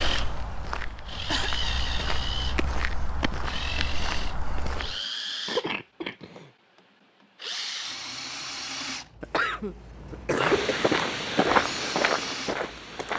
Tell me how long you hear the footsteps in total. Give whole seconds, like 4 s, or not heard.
8 s.